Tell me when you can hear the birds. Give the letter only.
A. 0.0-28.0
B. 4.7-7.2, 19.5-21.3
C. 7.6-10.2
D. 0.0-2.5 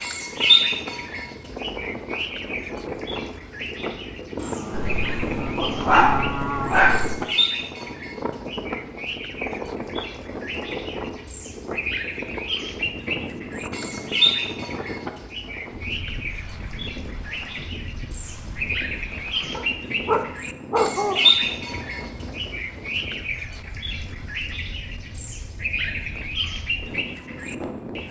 A.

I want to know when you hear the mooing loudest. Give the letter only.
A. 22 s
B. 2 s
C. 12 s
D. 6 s
D.